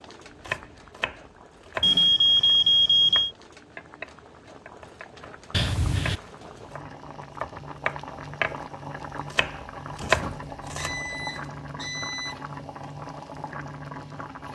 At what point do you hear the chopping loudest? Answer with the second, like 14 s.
10 s.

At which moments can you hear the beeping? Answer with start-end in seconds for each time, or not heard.
1.8-3.3, 5.5-6.2, 10.0-12.3.